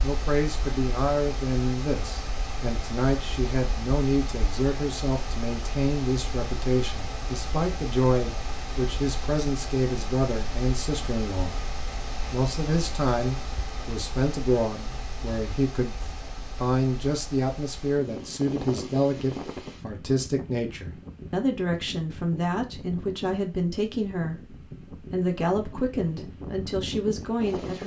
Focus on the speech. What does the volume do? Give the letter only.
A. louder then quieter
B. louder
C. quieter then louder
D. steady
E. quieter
D.